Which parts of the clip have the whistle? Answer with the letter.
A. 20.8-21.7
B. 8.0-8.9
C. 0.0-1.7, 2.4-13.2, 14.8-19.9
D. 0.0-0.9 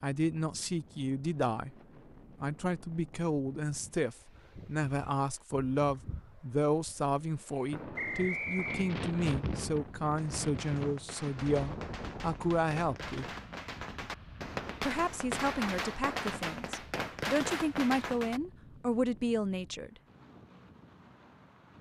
B.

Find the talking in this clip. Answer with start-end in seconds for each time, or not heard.
0.0-1.7, 2.4-13.2, 14.8-19.9.